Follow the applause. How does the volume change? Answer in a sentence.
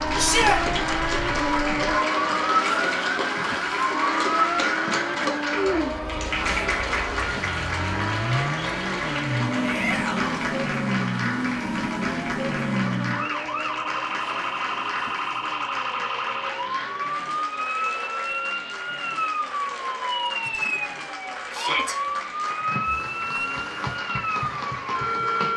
The volume of the applause goes down.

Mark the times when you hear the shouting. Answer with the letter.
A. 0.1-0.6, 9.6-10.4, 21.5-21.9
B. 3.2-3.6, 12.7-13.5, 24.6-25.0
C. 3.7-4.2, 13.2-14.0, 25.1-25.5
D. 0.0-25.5
A.